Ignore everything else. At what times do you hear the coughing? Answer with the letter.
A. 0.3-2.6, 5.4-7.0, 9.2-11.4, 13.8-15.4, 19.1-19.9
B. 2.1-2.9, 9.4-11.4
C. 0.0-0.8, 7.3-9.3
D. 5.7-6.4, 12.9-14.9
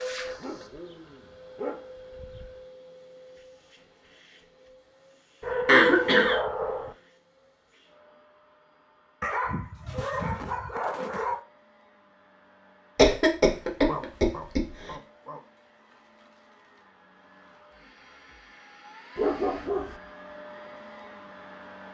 D.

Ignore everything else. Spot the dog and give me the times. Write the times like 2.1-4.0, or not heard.
0.3-2.6, 5.4-7.0, 9.2-11.4, 13.8-15.4, 19.1-19.9.